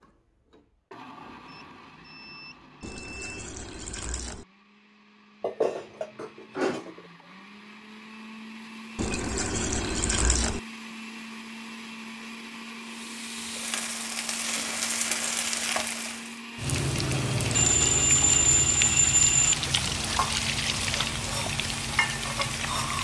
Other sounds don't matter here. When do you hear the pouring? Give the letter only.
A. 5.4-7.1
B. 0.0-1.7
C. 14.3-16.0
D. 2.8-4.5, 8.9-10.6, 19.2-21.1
D.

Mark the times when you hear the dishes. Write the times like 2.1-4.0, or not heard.
5.4-7.1.